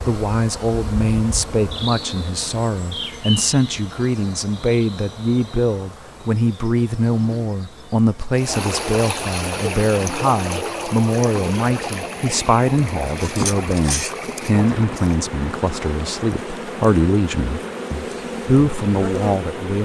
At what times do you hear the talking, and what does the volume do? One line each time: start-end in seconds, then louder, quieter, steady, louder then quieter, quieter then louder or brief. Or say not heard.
0.1-19.7 steady.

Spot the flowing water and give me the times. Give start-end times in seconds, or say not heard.
8.3-19.7.